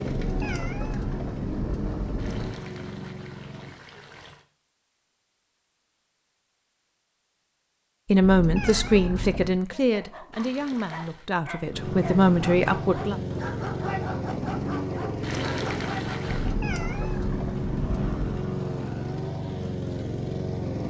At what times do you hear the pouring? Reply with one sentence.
The pouring can be heard from 2.1 to 4.5 s, from 10.3 to 11.3 s and from 15.2 to 16.6 s.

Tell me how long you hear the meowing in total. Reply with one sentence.
The meowing can be heard for 6 seconds in total.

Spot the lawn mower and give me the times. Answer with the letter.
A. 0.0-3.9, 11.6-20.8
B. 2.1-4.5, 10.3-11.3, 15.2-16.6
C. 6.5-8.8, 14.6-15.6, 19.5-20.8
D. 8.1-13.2
A.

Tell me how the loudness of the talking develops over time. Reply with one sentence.
The loudness of the talking goes down, then up.